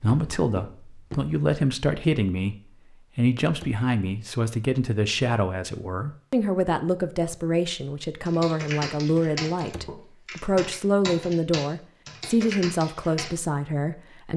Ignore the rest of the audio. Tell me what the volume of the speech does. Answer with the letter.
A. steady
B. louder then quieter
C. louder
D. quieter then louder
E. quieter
A.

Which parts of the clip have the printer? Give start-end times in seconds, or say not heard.
not heard.